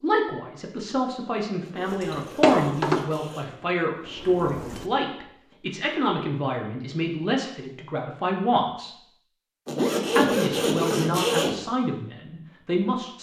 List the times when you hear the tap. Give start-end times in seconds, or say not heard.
1.9-4.8.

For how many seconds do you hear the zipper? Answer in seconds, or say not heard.
4 s.